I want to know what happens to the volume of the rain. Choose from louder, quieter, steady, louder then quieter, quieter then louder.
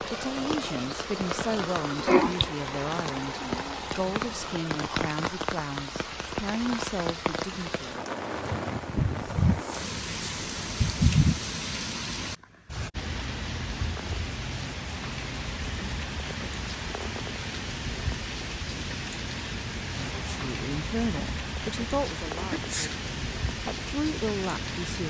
steady.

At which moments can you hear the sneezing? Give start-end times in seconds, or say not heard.
2.0-2.5, 8.9-11.4, 22.5-23.0.